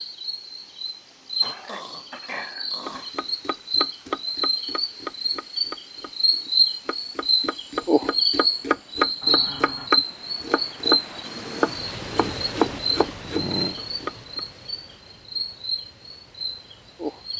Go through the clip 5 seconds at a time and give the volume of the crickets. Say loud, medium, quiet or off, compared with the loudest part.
medium, loud, medium, medium.